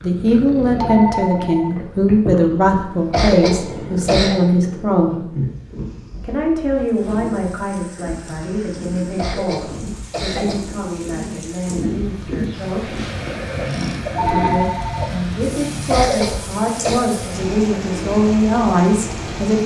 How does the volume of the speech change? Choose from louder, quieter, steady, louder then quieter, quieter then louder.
quieter then louder.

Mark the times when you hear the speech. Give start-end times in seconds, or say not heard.
0.0-5.3, 6.2-13.0, 14.2-19.6.